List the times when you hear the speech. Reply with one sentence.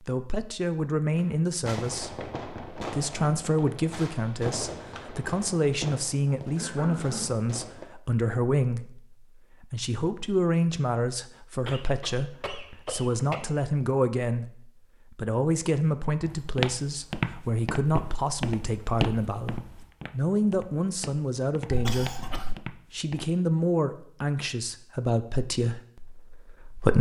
The speech can be heard from 0.0 to 22.2 s and from 22.9 to 26.9 s.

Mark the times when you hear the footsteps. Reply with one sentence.
You can hear the footsteps from 16.2 to 23.2 s.